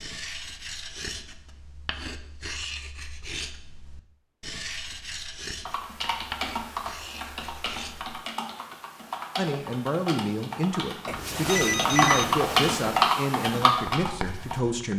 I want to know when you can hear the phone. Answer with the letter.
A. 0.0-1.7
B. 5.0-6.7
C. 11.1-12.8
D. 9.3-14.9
C.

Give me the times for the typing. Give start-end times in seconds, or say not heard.
5.7-14.6.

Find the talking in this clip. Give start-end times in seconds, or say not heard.
9.3-14.9.